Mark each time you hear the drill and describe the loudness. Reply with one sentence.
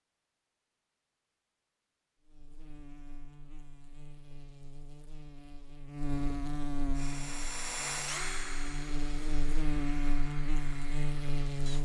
The drill can be heard from 6.9 to 11.8 s, getting quieter.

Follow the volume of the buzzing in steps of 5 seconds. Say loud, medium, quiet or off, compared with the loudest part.
quiet, loud, loud.